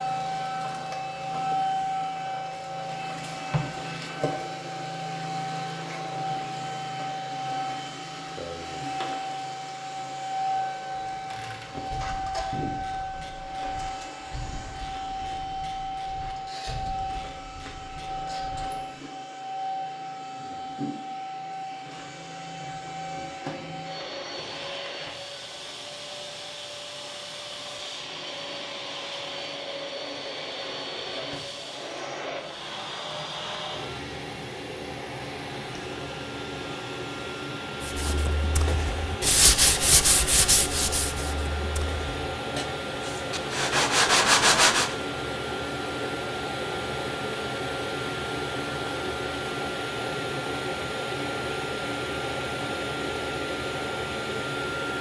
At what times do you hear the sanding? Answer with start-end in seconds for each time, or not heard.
37.8-45.0.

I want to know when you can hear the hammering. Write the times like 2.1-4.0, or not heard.
not heard.